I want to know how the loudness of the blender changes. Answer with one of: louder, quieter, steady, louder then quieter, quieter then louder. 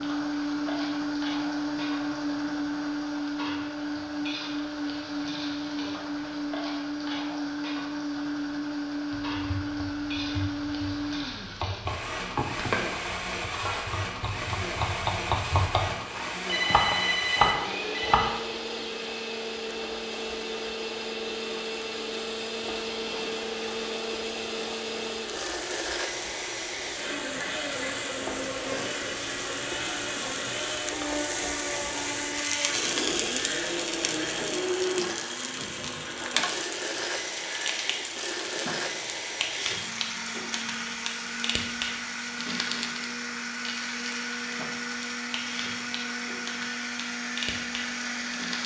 steady.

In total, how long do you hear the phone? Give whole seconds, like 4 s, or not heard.
2 s.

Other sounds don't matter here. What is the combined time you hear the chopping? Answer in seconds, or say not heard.
9 s.